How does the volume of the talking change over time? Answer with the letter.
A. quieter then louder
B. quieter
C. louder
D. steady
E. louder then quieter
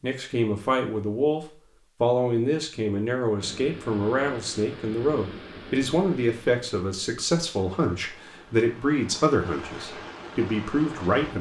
D.